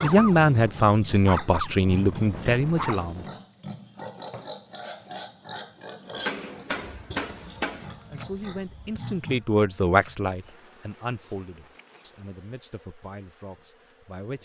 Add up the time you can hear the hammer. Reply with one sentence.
You can hear the hammer for 2 seconds altogether.